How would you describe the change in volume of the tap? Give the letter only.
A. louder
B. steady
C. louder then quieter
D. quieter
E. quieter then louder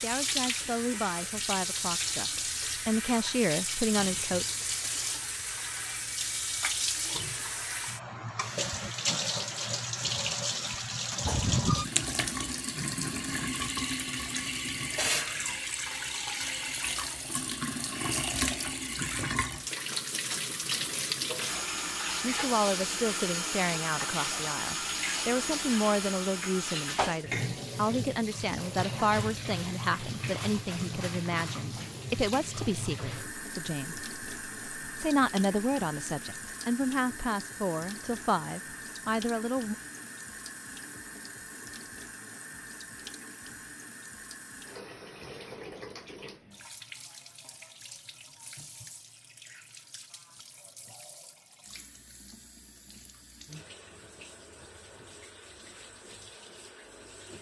D.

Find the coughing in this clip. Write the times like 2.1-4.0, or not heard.
11.1-11.8.